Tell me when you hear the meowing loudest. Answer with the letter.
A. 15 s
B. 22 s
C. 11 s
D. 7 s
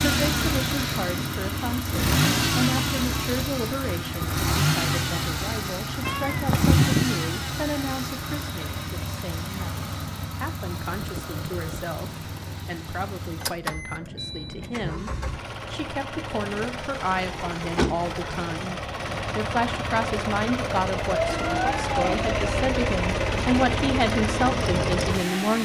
D.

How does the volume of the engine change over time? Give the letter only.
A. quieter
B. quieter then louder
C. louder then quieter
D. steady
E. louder
B.